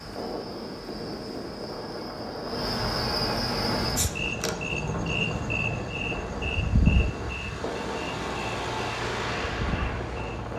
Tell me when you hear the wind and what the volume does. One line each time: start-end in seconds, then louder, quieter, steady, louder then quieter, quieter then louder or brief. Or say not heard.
0.0-10.5 steady.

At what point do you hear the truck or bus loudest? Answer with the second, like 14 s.
9 s.